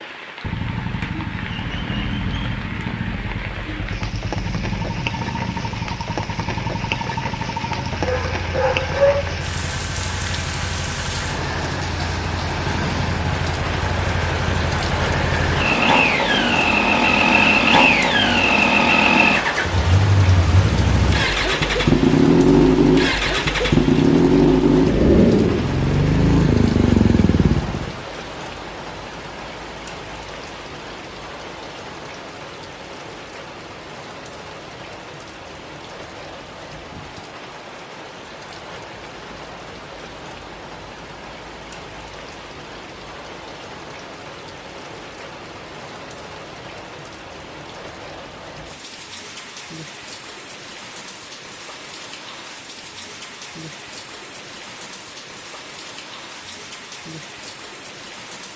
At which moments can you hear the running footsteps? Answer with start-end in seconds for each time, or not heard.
not heard.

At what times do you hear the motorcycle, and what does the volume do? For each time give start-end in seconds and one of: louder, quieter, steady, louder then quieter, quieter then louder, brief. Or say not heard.
0.0-28.1 louder.